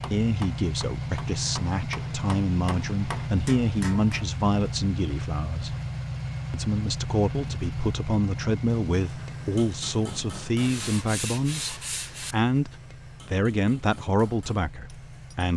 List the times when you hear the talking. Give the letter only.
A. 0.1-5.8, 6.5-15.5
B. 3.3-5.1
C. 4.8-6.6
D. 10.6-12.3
A.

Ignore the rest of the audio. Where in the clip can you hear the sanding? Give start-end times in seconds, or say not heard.
10.6-12.3.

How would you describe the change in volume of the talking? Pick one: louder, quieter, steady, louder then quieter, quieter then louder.
steady.